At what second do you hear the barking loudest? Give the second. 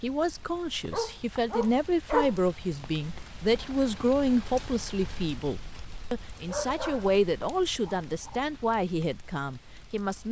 2 s.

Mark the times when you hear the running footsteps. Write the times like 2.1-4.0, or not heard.
not heard.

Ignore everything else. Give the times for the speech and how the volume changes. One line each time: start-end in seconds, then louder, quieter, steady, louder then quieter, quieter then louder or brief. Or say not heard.
0.0-10.2 steady.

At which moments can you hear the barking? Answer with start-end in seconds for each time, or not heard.
0.9-2.3, 6.5-7.2, 7.8-8.4.